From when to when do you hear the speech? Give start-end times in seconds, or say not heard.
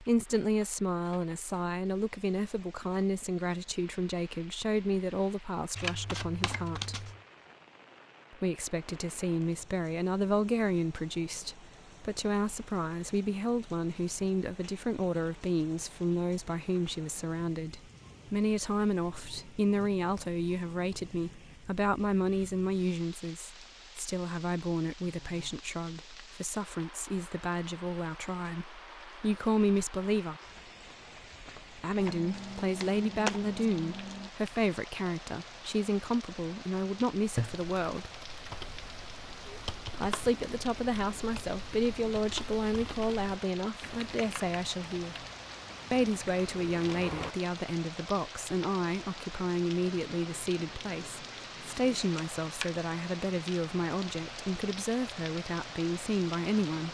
0.0-7.1, 8.3-30.4, 31.8-38.1, 40.0-45.2, 45.9-56.8.